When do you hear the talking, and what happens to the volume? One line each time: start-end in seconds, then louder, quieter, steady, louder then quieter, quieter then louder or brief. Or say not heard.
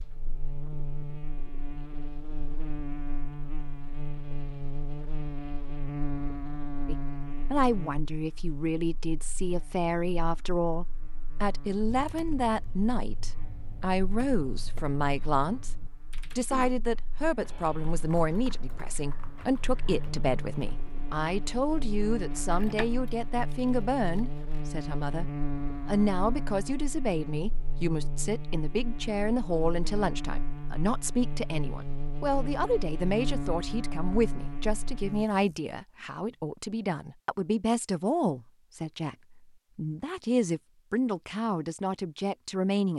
6.8-15.7 steady
16.4-42.9 steady.